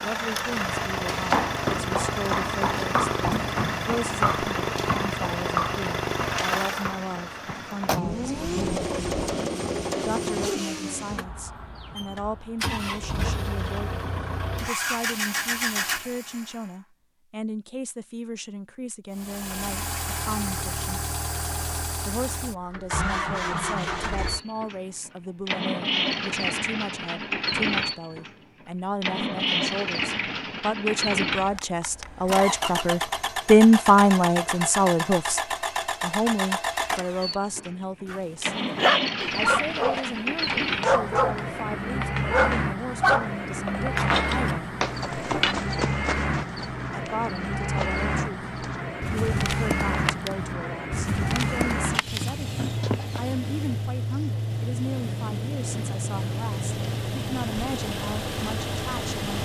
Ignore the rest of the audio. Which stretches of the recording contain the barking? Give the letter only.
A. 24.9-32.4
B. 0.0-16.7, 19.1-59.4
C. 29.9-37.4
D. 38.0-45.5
D.